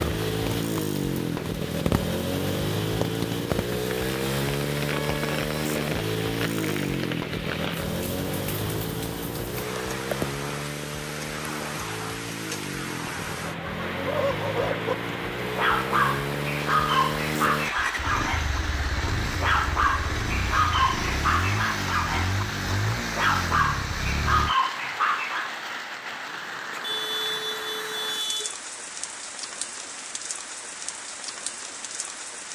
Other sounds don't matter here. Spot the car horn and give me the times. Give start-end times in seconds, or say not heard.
4.9-5.4, 26.7-28.6.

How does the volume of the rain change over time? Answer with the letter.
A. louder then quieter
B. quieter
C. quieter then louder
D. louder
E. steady
E.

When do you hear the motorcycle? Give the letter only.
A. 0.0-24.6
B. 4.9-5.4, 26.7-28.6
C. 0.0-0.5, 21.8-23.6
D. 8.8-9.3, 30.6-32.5
A.